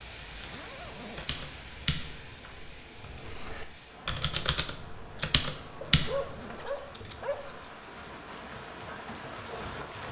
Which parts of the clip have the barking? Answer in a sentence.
You can hear the barking from 5.8 to 7.5 s.